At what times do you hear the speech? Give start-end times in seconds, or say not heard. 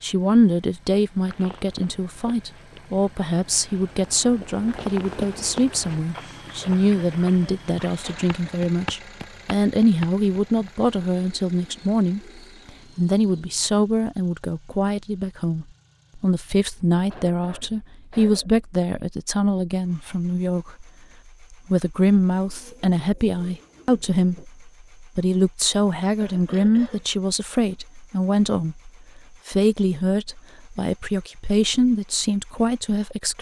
0.0-20.9, 21.5-33.3.